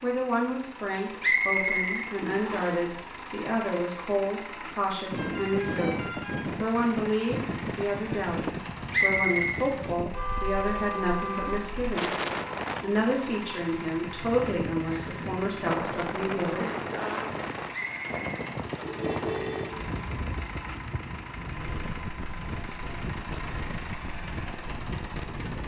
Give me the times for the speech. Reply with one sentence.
The speech can be heard from 0.0 to 6.0 s, from 6.5 to 12.2 s and from 12.8 to 16.7 s.